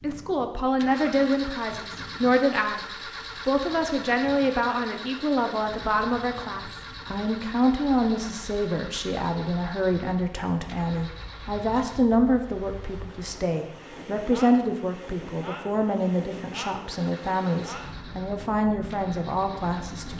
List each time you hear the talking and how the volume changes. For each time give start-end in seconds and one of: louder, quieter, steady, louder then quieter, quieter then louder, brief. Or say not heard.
0.0-2.8 brief
3.5-20.1 steady.